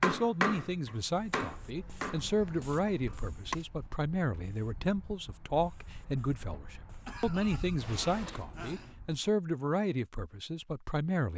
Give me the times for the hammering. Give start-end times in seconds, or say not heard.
0.0-3.5.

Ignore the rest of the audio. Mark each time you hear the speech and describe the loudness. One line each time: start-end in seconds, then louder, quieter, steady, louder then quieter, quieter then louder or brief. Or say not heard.
0.0-11.3 steady.